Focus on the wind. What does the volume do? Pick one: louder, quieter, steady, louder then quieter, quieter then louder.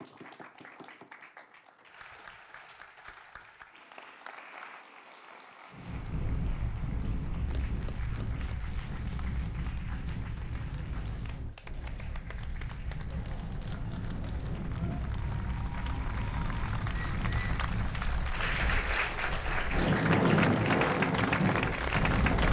louder.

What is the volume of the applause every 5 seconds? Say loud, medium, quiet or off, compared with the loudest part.
quiet, quiet, quiet, medium, loud.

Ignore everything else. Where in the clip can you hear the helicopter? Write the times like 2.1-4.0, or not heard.
not heard.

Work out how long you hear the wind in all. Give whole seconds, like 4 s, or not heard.
17 s.